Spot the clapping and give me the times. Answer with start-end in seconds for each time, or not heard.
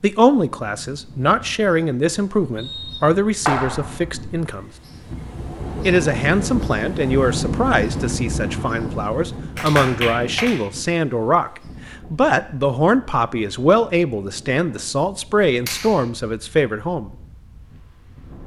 3.5-4.2, 9.6-10.7, 15.7-16.1.